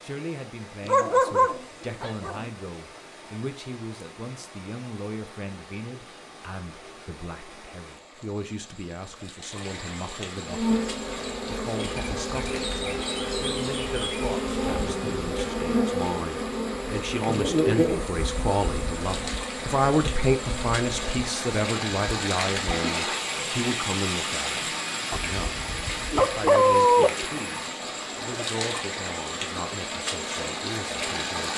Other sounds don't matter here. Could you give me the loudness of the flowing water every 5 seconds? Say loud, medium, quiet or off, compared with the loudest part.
quiet, quiet, medium, medium, loud, loud, loud.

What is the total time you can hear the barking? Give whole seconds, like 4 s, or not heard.
4 s.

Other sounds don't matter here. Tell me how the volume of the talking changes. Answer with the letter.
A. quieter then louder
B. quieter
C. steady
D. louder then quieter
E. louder
D.